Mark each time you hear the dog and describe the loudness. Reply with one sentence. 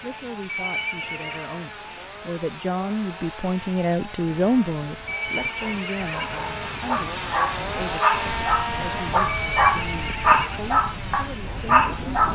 You can hear the dog from 5.2 to 12.2 s, getting louder.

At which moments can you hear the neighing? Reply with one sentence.
The neighing can be heard from 0.5 to 1.6 s, from 5.0 to 6.3 s and from 9.2 to 10.4 s.